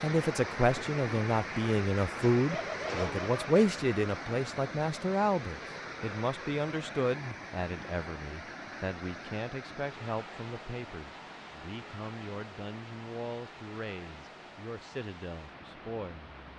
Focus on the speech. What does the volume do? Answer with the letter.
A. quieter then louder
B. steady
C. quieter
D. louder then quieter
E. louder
C.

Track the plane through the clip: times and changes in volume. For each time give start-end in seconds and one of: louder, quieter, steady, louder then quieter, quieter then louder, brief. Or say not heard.
not heard.